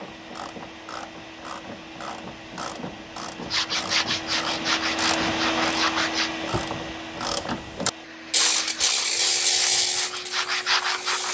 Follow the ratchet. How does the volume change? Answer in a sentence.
The volume of the ratchet goes up.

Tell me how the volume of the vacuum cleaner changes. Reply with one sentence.
The volume of the vacuum cleaner goes up, then down.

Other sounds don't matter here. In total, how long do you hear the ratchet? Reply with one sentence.
The ratchet can be heard for 11 seconds in total.